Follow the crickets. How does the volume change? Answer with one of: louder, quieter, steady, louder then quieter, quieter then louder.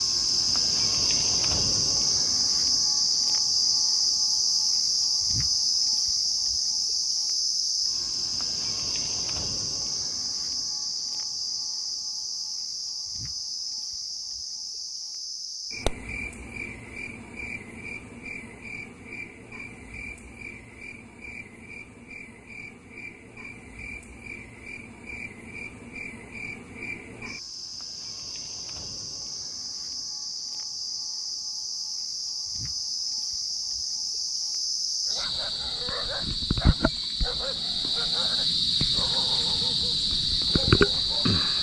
quieter then louder.